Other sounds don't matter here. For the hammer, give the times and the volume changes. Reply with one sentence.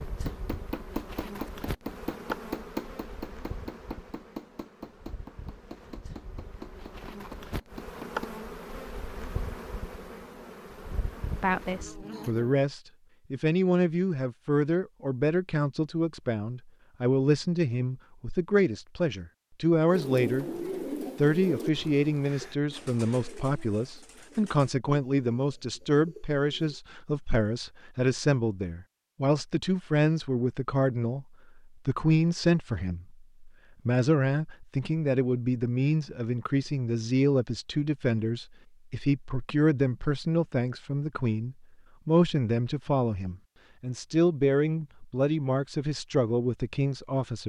You can hear the hammer from 0.2 to 8.3 s, getting quieter.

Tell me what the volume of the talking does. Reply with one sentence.
The volume of the talking stays about the same.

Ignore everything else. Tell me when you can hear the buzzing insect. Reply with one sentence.
The buzzing insect can be heard from 0.0 to 12.6 s.